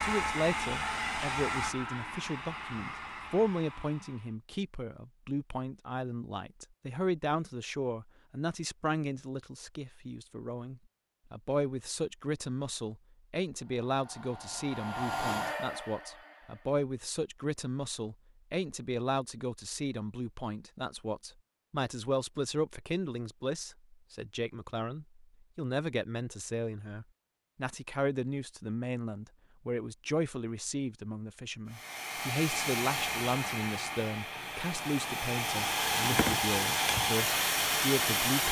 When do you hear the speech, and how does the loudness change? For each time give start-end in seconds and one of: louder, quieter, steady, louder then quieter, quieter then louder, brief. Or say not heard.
0.0-38.4 steady.